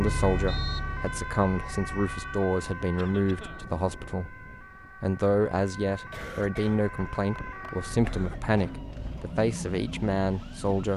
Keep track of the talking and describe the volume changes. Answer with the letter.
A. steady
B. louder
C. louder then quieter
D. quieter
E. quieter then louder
A.